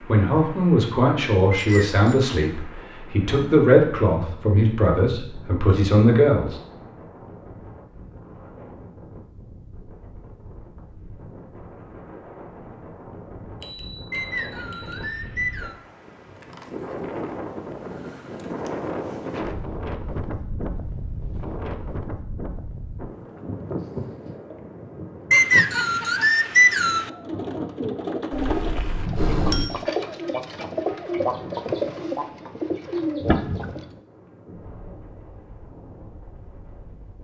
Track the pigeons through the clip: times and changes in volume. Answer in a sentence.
The pigeons can be heard from 26.9 to 33.9 s, at a steady volume.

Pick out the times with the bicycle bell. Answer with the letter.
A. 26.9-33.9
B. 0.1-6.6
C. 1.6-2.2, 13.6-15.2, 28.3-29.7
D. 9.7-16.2
C.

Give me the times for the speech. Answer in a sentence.
You can hear the speech from 0.1 to 6.6 s.